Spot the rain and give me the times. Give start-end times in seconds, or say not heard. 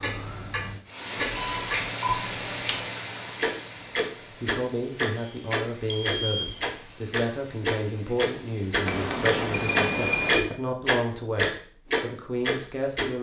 0.0-10.3.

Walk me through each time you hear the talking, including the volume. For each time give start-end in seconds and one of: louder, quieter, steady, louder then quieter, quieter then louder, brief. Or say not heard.
4.4-13.1 steady.